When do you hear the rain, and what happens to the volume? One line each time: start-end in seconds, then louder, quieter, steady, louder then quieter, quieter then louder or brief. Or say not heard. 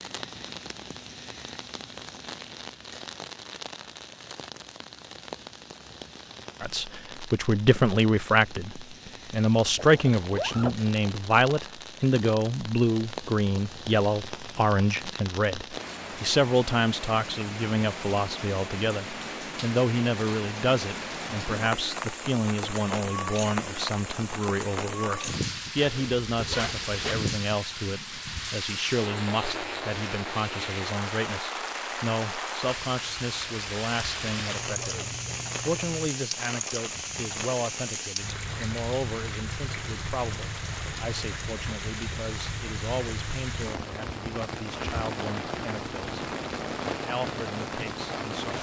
0.0-48.5 louder.